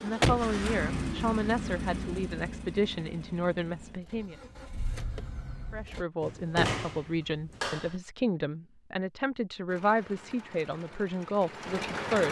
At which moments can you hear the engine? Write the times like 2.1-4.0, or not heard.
0.0-6.0, 9.7-12.2.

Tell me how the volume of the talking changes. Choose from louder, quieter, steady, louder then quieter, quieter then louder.
steady.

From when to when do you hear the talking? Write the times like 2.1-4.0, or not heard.
0.0-4.3, 5.7-12.2.